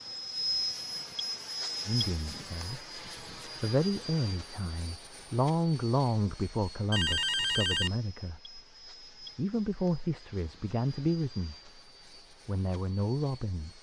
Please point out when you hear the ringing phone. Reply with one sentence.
The ringing phone can be heard from 6.9 to 8.0 s.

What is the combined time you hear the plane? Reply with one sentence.
The plane can be heard for 14 seconds in total.